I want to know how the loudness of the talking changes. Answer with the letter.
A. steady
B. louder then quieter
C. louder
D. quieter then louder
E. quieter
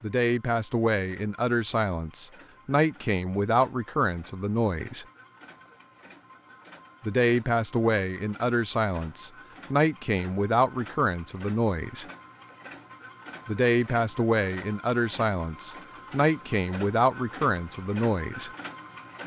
A.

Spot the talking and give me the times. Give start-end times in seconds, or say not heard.
0.0-5.0, 7.0-12.1, 13.4-18.5.